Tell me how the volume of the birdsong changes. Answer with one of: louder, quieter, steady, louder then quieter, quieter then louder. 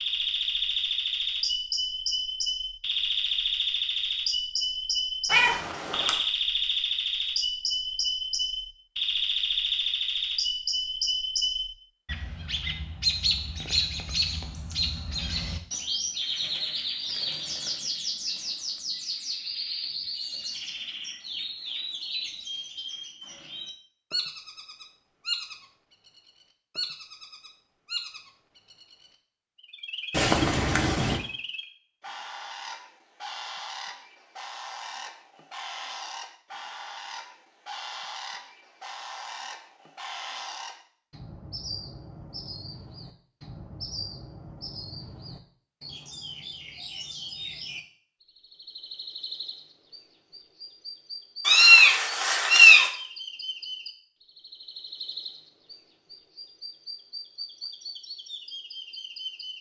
quieter.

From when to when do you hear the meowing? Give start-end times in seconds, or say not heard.
5.3-6.1, 30.1-31.2, 51.5-52.9.